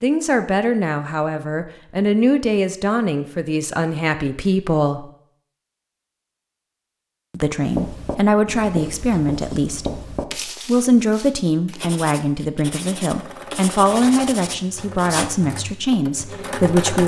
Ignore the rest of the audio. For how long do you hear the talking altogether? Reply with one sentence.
The talking can be heard for 15 seconds in total.